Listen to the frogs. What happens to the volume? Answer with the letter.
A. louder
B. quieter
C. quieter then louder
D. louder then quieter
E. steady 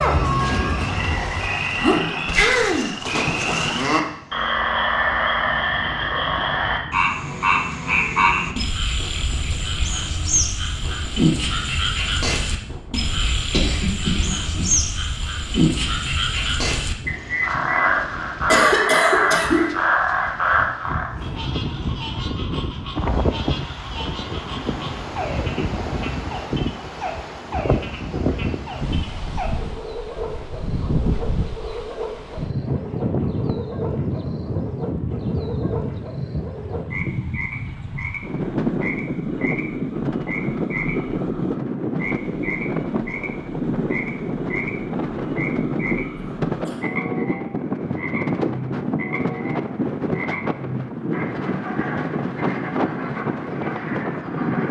B.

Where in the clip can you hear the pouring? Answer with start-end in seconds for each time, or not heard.
not heard.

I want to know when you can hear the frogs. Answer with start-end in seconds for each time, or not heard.
0.0-54.6.